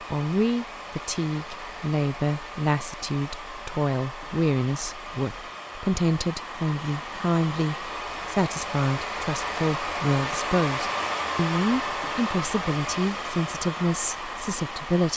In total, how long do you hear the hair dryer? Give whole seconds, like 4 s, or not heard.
15 s.